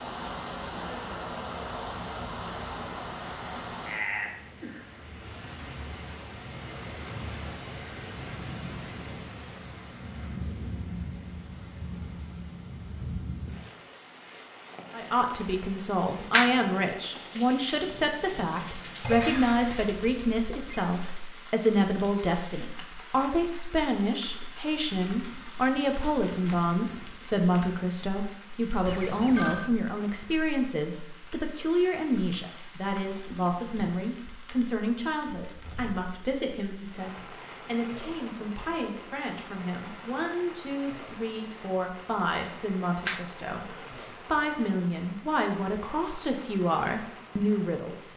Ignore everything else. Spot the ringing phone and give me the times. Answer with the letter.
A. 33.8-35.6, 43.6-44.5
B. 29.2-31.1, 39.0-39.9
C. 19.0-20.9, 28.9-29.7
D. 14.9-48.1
C.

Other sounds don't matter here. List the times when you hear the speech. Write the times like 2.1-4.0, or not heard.
14.9-48.1.